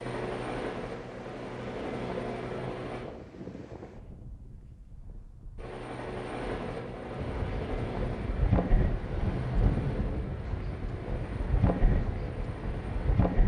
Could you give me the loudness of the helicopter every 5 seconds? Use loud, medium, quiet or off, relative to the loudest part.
loud, loud, medium.